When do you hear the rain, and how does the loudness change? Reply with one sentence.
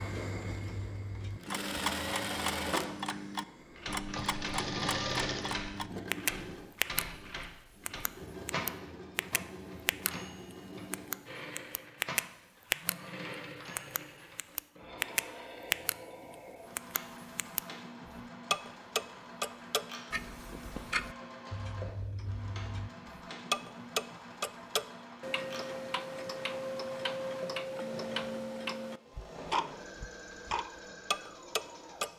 The rain can't be heard in this clip.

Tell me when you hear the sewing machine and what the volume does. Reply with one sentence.
The sewing machine can be heard from 0.0 to 32.1 s, getting quieter.